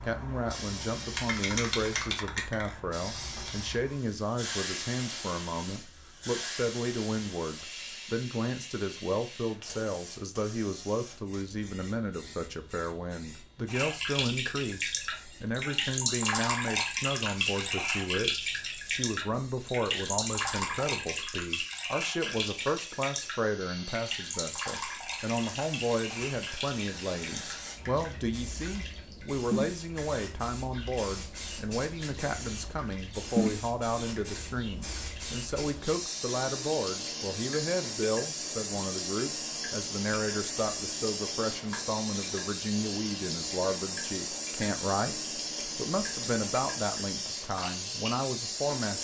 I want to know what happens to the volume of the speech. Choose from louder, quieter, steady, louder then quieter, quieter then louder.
steady.